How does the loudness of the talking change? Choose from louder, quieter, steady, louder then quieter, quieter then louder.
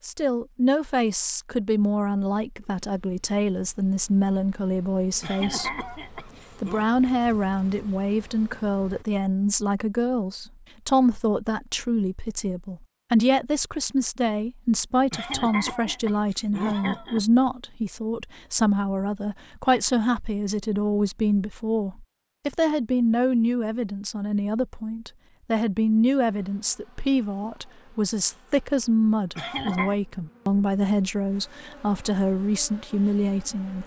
steady.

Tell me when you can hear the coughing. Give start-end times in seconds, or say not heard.
5.2-6.9, 15.1-17.2, 29.4-29.9.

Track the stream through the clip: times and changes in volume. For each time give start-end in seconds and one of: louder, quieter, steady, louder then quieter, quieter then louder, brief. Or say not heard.
not heard.